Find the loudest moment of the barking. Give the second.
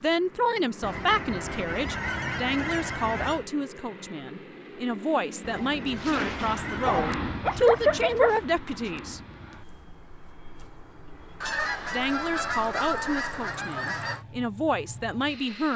8 s.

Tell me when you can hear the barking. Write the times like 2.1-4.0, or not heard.
6.0-8.3.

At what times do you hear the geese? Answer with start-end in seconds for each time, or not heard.
0.8-3.5, 5.4-7.2, 11.4-14.2.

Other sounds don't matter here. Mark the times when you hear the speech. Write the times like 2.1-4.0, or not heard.
0.0-9.2, 11.4-15.7.